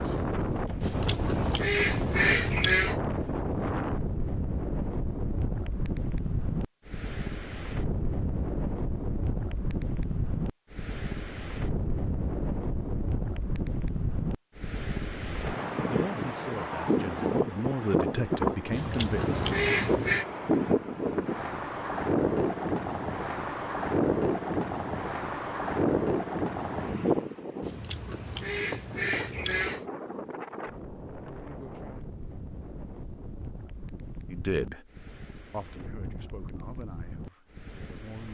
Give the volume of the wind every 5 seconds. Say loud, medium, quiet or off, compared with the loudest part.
loud, medium, medium, loud, loud, loud, quiet, quiet.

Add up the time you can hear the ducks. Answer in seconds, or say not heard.
6 s.